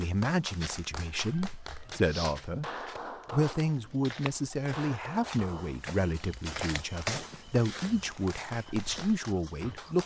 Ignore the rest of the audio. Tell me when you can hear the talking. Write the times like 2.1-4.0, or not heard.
0.0-2.6, 3.3-10.0.